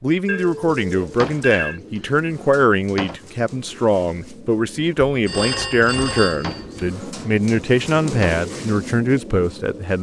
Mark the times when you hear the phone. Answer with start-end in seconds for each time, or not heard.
0.2-1.8, 5.0-6.9.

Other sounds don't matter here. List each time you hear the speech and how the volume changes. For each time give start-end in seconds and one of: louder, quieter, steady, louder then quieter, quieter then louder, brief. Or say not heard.
0.0-9.9 steady.